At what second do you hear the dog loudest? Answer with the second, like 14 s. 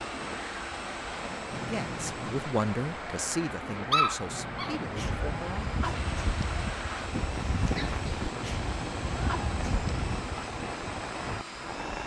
4 s.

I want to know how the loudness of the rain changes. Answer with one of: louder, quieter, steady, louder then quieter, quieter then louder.
steady.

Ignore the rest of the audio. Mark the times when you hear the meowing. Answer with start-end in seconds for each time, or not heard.
1.5-2.5, 4.2-6.3, 8.3-10.3.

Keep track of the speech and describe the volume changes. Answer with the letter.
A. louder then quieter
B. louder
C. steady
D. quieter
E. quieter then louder
D.